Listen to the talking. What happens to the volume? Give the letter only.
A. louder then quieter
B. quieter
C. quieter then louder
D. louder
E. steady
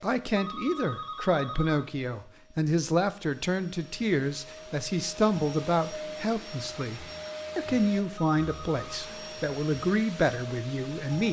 E.